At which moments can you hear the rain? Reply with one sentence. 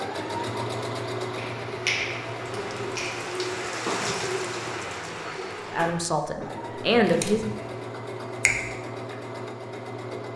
The rain can be heard from 0.0 to 6.1 s.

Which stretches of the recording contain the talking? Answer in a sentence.
The talking can be heard from 5.1 to 7.5 s.